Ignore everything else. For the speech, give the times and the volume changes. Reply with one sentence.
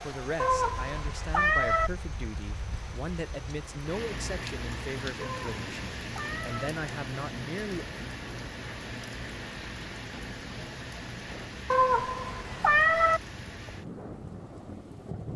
You can hear the speech from 0.0 to 7.8 s, at a steady volume.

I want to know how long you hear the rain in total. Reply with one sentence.
You can hear the rain for 15 seconds altogether.